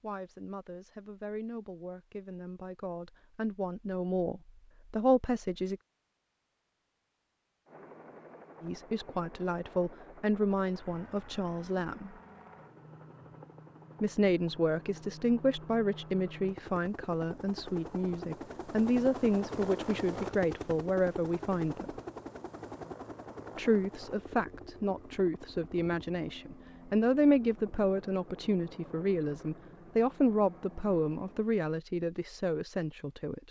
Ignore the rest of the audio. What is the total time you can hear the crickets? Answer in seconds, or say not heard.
not heard.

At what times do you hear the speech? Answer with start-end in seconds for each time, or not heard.
0.0-5.8, 8.6-12.1, 14.0-21.9, 23.6-33.4.